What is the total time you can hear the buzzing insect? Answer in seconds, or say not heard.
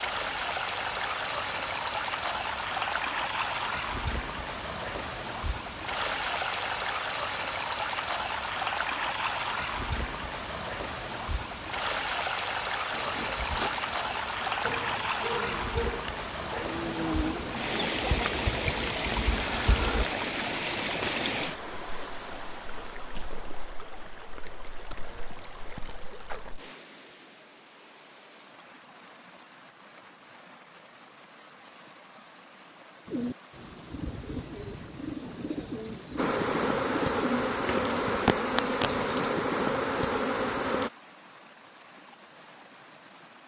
12 s.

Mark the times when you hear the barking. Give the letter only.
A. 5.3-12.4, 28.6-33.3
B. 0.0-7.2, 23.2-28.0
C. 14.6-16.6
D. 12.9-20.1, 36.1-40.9
C.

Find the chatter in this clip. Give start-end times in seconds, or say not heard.
not heard.